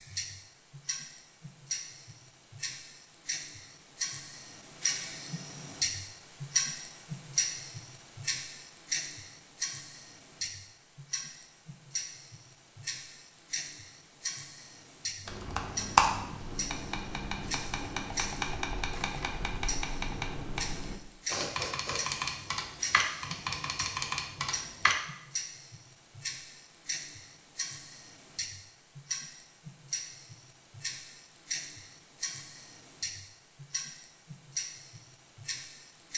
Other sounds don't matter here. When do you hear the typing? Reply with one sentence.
The typing can be heard from 15.2 to 24.9 s.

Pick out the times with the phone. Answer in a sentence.
The phone can't be heard in this clip.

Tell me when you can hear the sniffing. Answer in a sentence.
You can hear the sniffing from 21.2 to 22.0 s.